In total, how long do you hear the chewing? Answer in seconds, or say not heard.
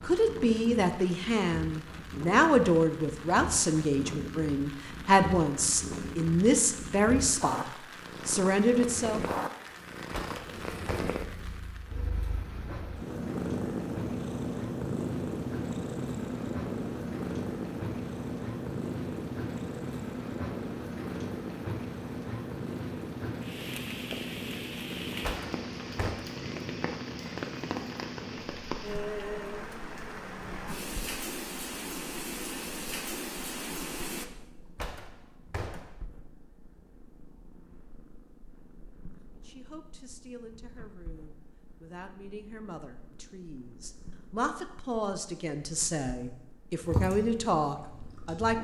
2 s.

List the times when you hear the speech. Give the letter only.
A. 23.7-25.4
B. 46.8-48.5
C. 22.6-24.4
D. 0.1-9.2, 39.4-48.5
D.